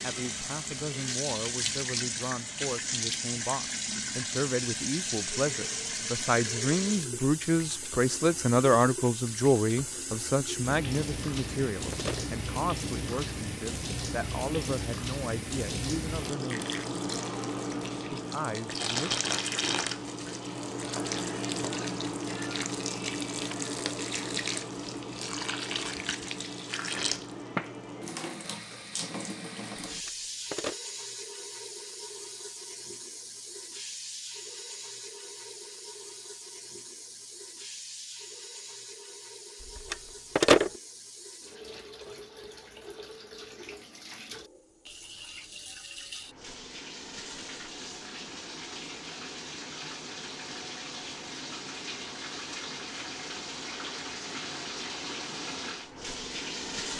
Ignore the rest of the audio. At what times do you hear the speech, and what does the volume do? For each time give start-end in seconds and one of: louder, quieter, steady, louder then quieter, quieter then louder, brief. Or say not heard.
0.0-16.7 louder then quieter
18.1-19.2 brief.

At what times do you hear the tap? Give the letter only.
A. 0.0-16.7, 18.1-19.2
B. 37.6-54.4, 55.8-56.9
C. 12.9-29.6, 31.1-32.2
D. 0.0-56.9
D.